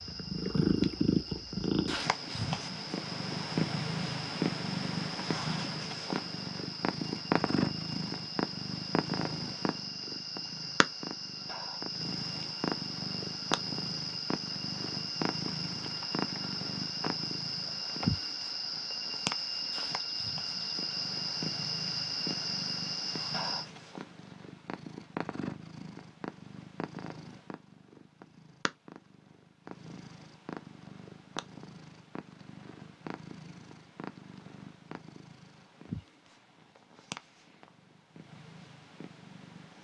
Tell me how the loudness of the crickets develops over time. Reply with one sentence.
The loudness of the crickets goes up.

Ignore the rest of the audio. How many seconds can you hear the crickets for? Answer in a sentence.
You can hear the crickets for 24 seconds altogether.